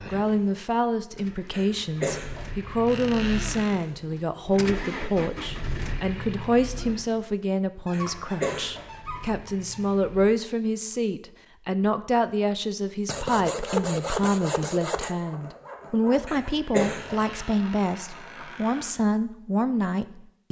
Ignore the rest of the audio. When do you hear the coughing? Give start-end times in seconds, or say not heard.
1.5-2.5, 7.9-8.9, 16.2-17.2.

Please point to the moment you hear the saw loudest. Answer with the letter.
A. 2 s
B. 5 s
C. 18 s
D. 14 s
D.